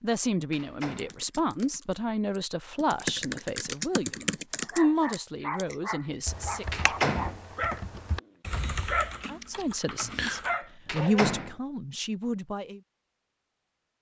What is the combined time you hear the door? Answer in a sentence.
The door can be heard for 2 seconds in total.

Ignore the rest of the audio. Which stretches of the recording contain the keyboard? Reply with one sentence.
The keyboard can be heard from 0.9 to 10.6 s.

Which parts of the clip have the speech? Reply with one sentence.
The speech can be heard from 0.0 to 6.7 s and from 9.2 to 12.8 s.